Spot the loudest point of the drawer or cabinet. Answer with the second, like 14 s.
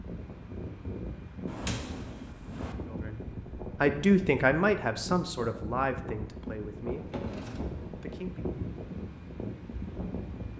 2 s.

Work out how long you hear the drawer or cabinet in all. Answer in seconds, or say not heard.
2 s.